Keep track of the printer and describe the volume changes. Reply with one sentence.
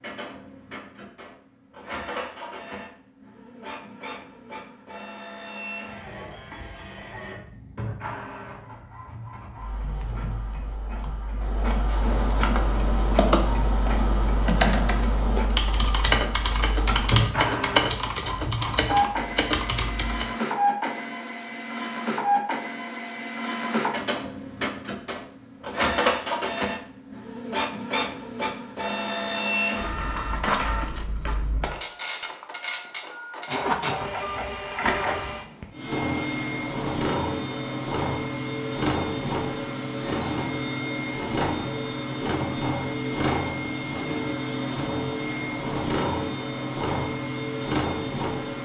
The loudness of the printer goes up.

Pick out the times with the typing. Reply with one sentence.
The typing can be heard from 9.8 to 20.4 s.